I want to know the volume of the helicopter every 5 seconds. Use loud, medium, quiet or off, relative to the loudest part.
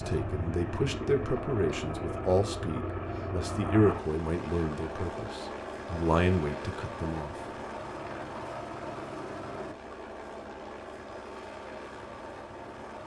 loud, loud, medium.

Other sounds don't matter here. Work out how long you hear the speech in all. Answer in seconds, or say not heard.
7 s.